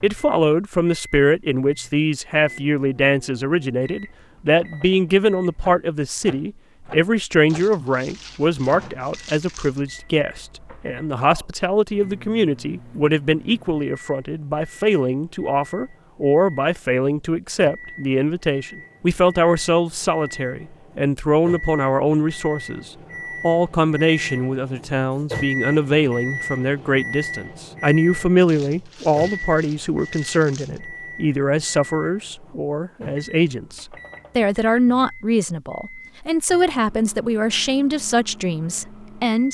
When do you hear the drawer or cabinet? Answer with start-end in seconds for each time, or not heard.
not heard.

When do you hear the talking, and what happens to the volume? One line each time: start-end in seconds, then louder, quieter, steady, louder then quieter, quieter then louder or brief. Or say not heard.
0.0-39.4 steady.